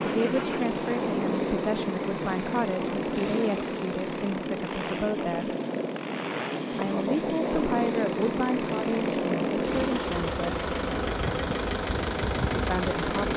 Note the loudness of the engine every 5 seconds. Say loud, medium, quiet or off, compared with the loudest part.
medium, loud, loud.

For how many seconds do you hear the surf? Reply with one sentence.
You can hear the surf for 13 seconds altogether.